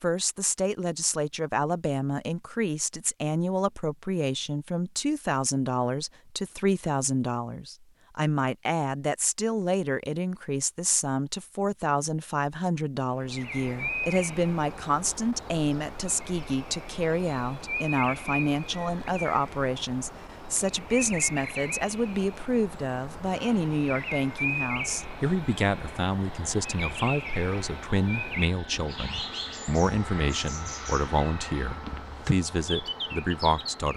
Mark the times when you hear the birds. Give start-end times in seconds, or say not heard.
13.2-33.9.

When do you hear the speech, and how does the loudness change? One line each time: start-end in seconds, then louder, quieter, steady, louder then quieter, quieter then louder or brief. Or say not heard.
0.0-33.9 steady.